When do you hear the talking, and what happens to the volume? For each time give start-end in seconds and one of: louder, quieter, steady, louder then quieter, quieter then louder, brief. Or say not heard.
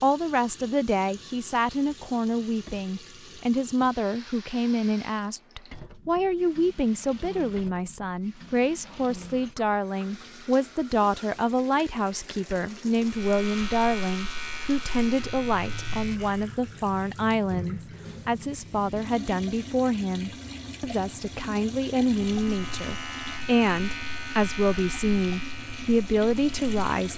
0.0-27.1 steady.